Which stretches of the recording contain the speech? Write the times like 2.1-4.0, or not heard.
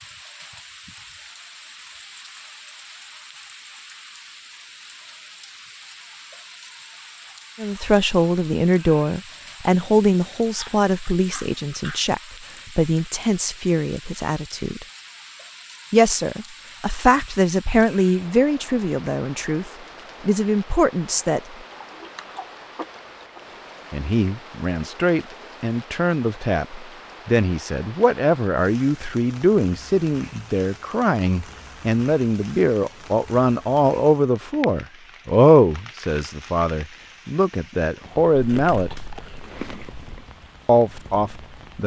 7.6-14.8, 15.9-21.4, 23.9-39.0, 40.6-41.8.